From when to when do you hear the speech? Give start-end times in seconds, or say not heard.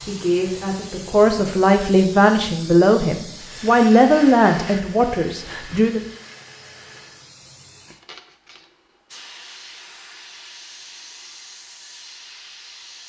0.0-6.0.